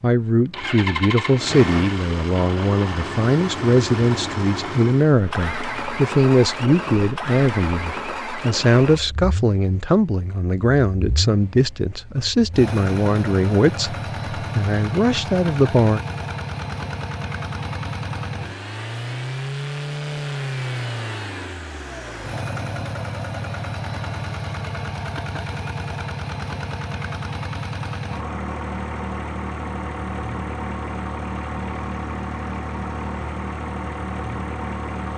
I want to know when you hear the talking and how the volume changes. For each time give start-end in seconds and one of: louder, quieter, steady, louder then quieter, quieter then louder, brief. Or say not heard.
0.0-16.0 steady.